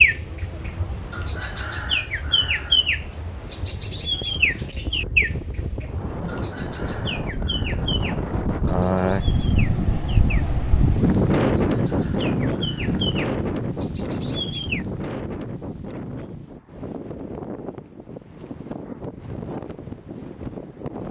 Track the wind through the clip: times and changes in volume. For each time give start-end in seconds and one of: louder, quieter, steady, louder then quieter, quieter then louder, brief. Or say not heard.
0.0-21.0 louder then quieter.